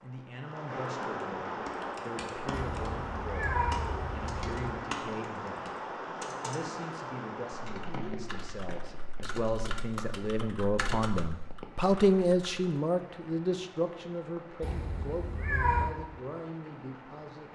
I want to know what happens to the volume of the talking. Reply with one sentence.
The volume of the talking goes up, then down.